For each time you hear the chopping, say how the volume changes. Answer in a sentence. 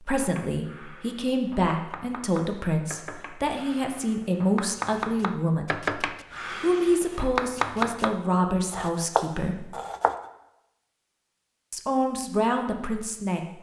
You can hear the chopping from 0.2 to 10.2 s, getting louder.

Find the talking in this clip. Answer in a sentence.
The talking can be heard from 0.0 to 9.7 s and from 11.7 to 13.5 s.